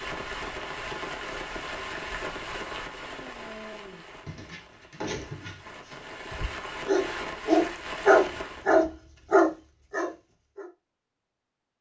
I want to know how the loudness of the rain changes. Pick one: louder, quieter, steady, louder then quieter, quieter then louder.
quieter then louder.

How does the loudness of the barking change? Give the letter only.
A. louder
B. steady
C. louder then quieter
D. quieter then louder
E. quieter
A.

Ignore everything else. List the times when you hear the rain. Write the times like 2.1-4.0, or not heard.
0.0-8.7.